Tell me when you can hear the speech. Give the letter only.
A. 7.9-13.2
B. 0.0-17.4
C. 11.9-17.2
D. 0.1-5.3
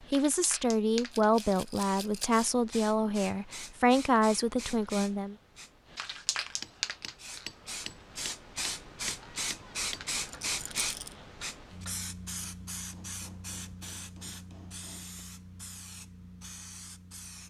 D.